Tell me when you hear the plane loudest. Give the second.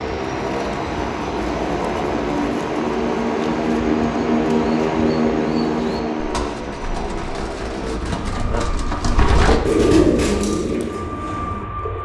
5 s.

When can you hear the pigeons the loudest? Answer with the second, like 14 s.
10 s.